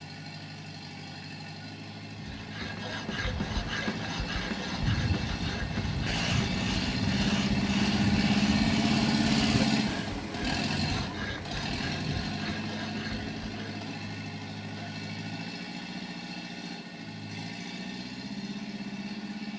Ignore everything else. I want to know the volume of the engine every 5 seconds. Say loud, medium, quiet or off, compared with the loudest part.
quiet, loud, medium, medium.